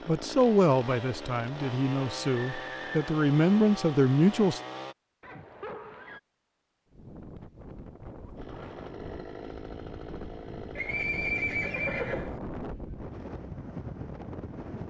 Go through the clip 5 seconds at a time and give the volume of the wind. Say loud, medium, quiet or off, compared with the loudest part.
off, medium, loud.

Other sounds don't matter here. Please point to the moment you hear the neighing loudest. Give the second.
11 s.